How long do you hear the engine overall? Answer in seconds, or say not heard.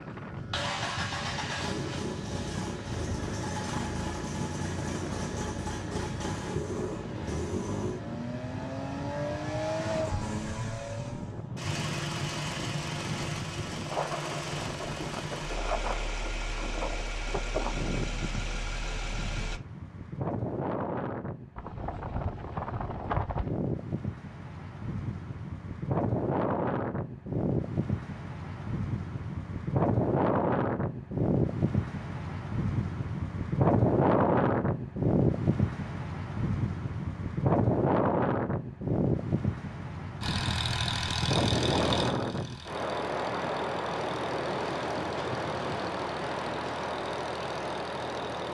28 s.